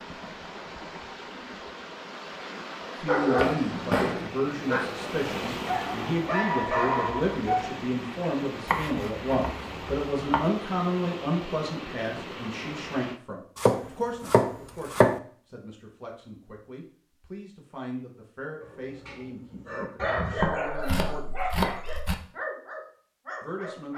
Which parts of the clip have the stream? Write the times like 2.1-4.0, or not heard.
0.0-13.2.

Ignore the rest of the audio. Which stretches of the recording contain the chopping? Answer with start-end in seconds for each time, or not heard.
3.4-4.3, 8.7-10.5, 13.6-15.2, 20.4-22.1.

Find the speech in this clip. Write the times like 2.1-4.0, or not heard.
3.0-21.6, 23.4-23.9.